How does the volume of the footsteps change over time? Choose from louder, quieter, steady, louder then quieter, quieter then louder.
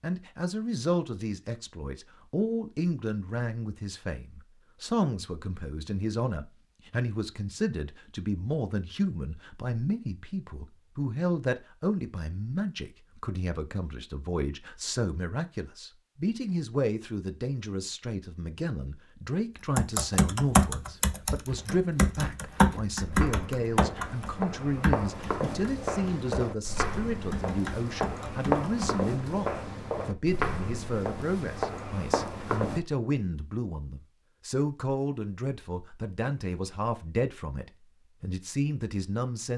louder.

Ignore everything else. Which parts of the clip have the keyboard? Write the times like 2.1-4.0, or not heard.
19.8-29.0.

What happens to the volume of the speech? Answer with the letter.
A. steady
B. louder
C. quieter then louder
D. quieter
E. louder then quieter
A.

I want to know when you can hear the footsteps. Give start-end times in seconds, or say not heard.
21.4-32.8.